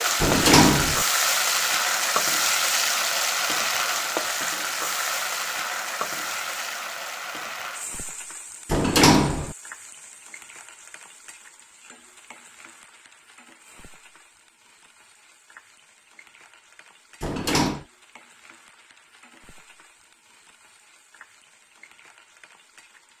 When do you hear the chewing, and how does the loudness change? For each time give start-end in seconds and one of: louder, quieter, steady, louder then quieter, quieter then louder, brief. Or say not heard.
not heard.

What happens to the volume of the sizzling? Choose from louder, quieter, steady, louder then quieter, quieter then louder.
quieter.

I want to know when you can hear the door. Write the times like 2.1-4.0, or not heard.
0.2-1.1, 8.7-9.6, 17.2-17.9.